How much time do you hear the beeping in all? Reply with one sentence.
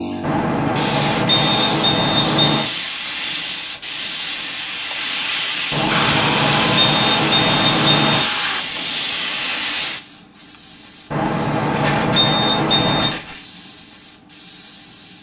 The beeping can be heard for 7 seconds in total.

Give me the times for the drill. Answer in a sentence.
The drill can be heard from 5.8 to 8.7 s.